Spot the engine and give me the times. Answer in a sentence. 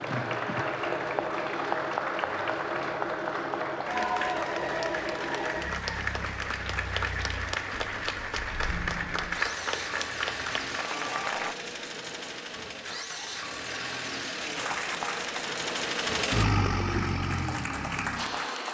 The engine can be heard from 0.0 to 18.6 s.